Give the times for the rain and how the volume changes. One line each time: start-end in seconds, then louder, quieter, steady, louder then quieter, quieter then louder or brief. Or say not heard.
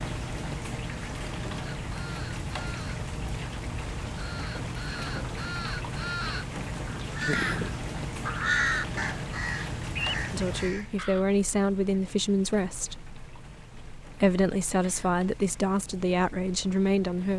0.0-17.3 quieter.